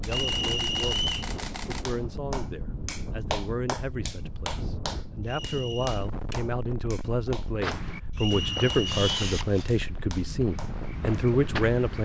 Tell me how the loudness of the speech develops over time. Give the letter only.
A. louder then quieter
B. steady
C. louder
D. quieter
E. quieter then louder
C.